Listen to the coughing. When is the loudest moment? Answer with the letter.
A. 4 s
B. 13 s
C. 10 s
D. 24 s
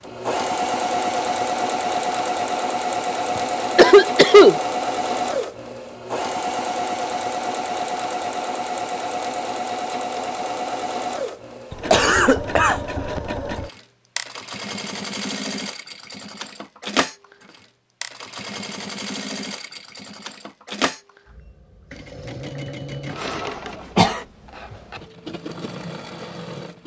A.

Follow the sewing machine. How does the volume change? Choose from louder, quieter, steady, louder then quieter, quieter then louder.
quieter.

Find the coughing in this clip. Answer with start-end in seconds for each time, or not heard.
3.4-4.5, 11.7-13.2, 23.2-24.2.